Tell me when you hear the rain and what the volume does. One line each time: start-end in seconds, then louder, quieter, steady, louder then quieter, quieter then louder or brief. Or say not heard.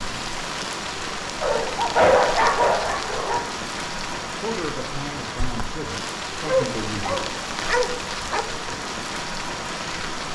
0.0-10.2 steady.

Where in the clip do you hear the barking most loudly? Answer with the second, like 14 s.
2 s.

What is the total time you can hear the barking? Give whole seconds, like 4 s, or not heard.
4 s.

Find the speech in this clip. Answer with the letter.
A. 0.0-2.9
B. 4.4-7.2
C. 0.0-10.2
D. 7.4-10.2
B.